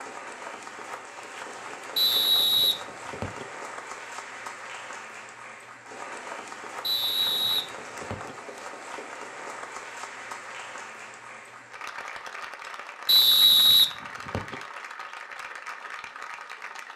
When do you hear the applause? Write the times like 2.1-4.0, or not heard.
0.0-16.9.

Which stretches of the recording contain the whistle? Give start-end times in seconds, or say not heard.
1.9-3.5, 6.8-8.3, 13.1-14.6.